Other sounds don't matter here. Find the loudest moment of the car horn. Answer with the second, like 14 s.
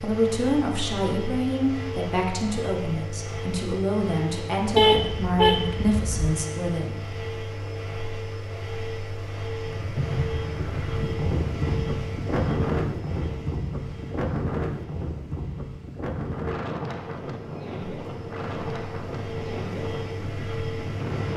5 s.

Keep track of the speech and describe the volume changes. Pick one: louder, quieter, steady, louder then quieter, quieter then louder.
steady.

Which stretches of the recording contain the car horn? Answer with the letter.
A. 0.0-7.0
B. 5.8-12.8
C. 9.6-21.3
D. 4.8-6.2
D.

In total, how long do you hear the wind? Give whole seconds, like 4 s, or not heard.
12 s.